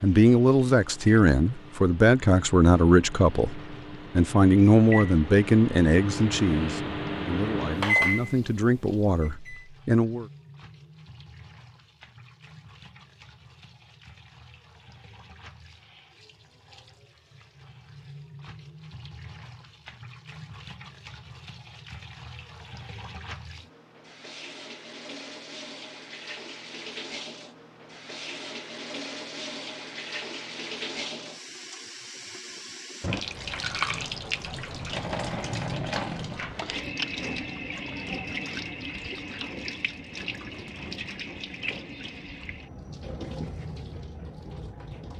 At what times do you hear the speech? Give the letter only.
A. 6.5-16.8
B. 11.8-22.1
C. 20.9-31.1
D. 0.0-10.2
D.